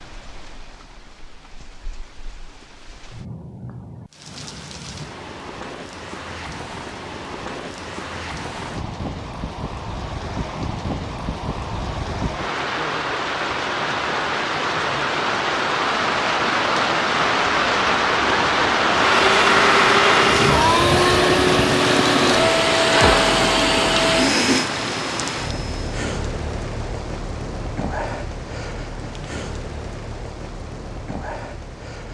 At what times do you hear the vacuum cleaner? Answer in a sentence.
The vacuum cleaner can be heard from 18.9 to 25.9 s.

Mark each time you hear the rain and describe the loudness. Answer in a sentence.
The rain can be heard from 0.0 to 32.0 s, getting louder then quieter.